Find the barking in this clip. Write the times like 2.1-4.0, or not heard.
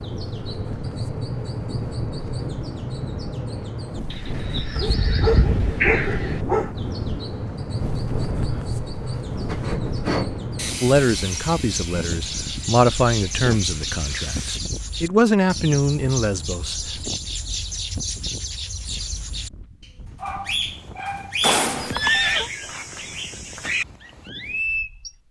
4.8-6.8, 20.1-21.4.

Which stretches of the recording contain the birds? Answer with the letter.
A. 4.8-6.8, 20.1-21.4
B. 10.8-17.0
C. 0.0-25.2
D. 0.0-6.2
C.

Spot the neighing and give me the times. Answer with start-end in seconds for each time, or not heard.
21.4-22.5.